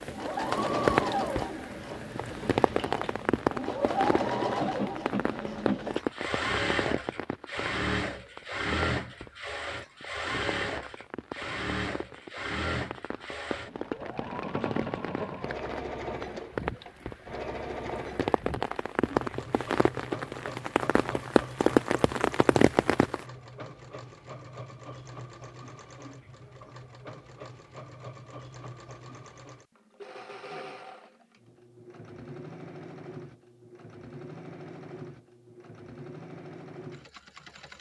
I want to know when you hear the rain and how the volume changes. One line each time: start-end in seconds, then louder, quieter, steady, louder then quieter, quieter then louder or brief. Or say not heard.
0.0-23.2 quieter then louder.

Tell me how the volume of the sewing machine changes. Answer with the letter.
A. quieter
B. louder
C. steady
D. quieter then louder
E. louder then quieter
A.